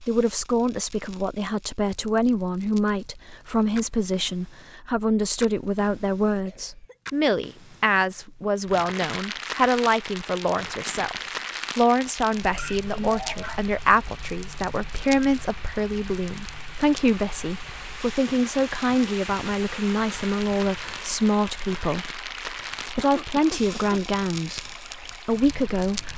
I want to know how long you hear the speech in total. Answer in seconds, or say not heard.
26 s.